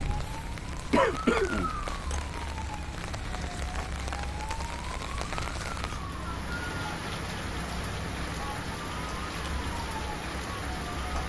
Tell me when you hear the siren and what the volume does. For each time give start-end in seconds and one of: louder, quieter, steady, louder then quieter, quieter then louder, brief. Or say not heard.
0.0-11.2 steady.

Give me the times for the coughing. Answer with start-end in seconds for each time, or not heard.
0.9-2.2.